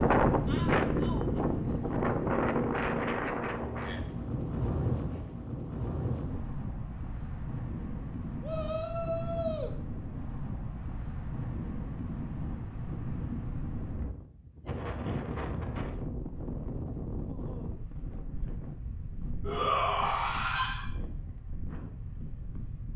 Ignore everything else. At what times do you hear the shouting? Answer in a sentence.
The shouting can be heard from 0.5 to 1.4 s, from 8.4 to 9.8 s and from 19.4 to 20.9 s.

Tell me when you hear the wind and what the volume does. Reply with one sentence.
You can hear the wind from 0.0 to 22.9 s, getting quieter.